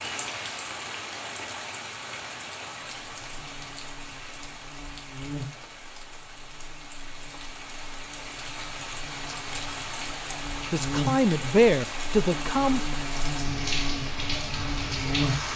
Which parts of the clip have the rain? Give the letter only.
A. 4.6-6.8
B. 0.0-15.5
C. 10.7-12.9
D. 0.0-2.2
B.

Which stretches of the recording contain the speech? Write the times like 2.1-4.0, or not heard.
10.7-12.9.